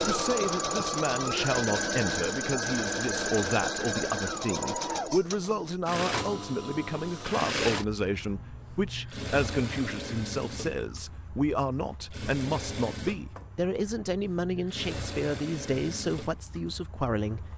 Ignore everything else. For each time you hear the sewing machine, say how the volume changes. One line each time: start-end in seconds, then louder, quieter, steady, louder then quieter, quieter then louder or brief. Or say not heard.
0.0-17.5 quieter.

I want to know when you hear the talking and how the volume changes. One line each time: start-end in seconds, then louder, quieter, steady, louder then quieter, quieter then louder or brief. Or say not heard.
0.0-17.5 steady.